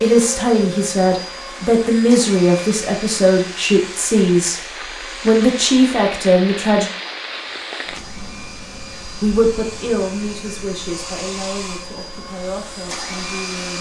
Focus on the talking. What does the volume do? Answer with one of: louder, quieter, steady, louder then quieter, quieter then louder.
quieter.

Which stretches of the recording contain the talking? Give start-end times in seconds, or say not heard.
0.0-6.9, 9.2-13.7.